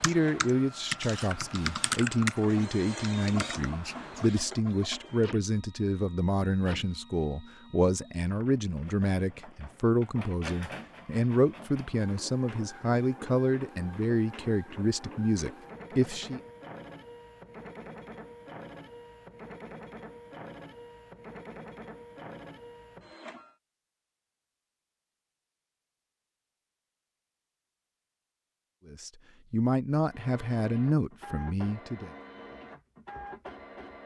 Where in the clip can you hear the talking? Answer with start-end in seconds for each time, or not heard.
0.0-16.4, 28.9-32.1.